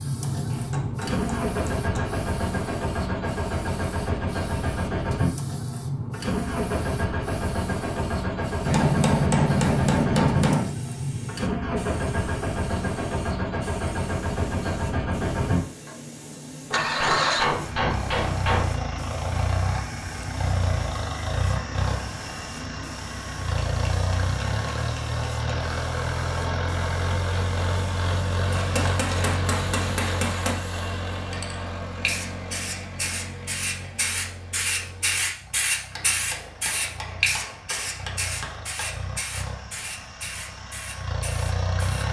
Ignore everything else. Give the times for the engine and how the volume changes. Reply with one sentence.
You can hear the engine from 0.0 to 42.0 s, getting quieter.